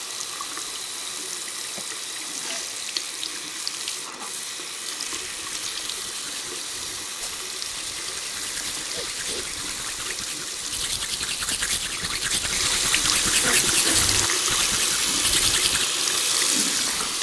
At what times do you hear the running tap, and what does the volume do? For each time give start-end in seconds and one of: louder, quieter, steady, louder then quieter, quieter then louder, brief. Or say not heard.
0.0-17.1 louder.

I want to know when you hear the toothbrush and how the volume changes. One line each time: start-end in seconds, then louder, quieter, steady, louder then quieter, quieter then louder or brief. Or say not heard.
5.0-15.9 louder.